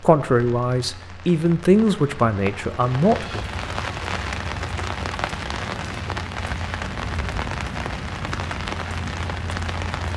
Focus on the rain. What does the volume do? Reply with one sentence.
The loudness of the rain goes up.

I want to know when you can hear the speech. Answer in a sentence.
The speech can be heard from 0.0 to 3.5 s.